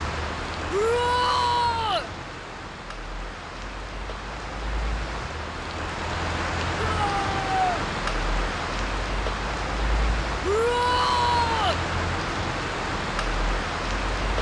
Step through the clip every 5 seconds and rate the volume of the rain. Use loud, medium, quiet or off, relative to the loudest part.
medium, loud, loud.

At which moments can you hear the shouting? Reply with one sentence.
The shouting can be heard from 0.7 to 2.1 s, from 6.8 to 7.6 s and from 10.4 to 11.8 s.